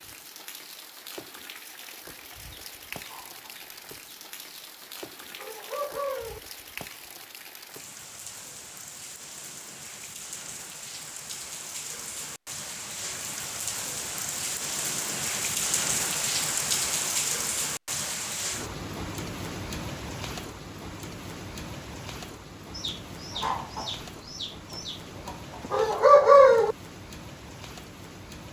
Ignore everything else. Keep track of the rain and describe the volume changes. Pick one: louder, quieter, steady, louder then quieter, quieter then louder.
louder then quieter.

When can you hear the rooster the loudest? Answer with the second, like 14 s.
26 s.